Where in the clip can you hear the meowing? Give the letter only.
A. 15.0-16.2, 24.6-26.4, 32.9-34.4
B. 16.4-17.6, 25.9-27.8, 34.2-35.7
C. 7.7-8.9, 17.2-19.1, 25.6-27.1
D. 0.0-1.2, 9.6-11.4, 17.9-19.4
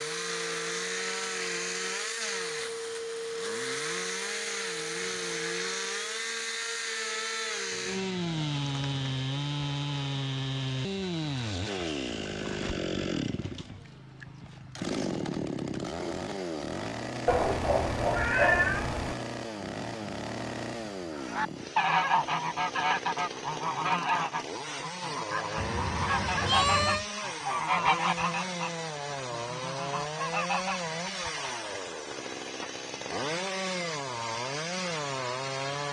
C.